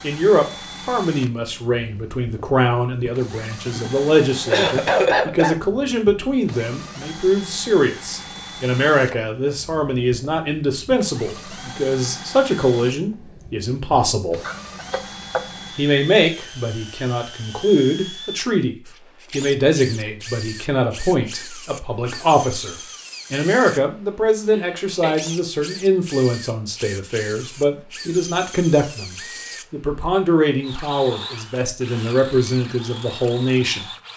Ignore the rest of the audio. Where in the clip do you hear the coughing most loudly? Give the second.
5 s.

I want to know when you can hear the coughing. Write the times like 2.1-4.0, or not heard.
3.8-5.5, 14.4-15.4, 24.5-25.1.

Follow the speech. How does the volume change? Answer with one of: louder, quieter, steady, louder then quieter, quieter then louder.
steady.